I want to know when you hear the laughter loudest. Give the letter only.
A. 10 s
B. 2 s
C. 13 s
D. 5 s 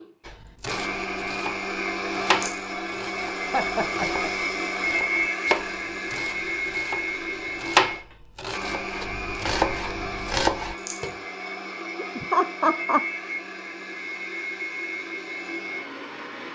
C.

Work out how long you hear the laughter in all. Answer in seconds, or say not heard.
2 s.